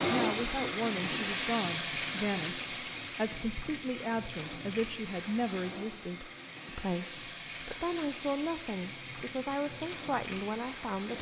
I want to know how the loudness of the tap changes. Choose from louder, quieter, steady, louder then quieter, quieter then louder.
quieter.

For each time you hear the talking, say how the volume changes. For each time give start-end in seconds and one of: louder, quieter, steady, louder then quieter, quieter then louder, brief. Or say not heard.
0.1-11.1 steady.